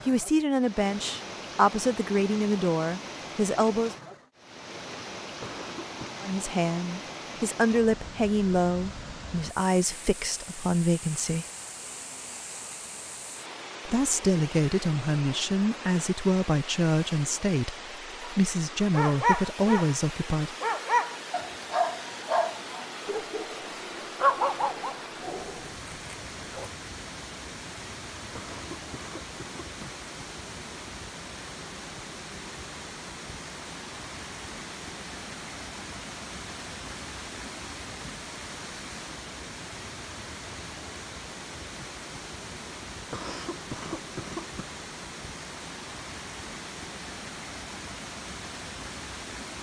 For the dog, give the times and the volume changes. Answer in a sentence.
You can hear the dog from 18.2 to 26.7 s, getting quieter.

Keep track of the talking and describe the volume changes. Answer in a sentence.
The loudness of the talking stays about the same.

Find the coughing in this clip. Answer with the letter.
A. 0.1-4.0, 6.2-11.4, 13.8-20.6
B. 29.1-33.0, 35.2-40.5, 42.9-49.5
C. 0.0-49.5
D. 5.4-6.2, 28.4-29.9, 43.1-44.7
D.